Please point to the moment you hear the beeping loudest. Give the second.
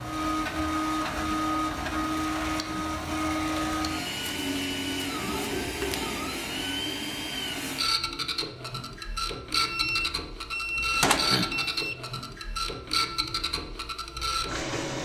11 s.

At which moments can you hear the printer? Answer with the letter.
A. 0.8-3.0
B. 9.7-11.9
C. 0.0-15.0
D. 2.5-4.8
C.